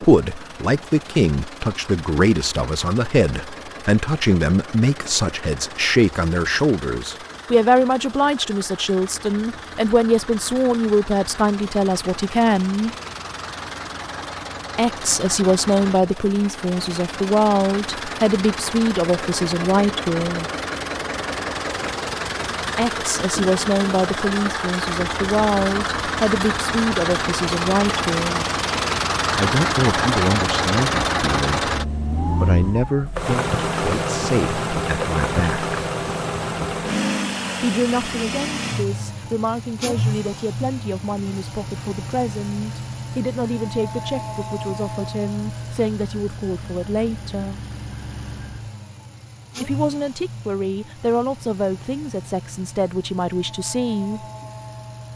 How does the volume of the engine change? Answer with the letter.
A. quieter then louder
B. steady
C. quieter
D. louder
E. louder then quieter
E.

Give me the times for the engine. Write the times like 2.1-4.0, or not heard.
0.0-55.1.